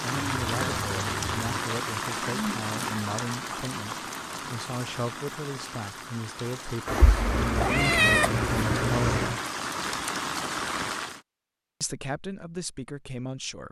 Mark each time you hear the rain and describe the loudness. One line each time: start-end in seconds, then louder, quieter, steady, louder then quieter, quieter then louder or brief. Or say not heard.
0.0-11.2 quieter then louder.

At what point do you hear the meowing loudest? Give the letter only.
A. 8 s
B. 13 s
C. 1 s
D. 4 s
A.